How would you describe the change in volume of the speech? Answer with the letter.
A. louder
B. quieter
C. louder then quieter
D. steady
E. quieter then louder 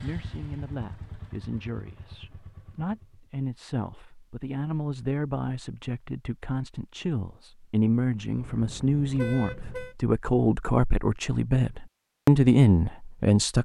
A.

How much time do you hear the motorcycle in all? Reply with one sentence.
The motorcycle can be heard for 3 seconds in total.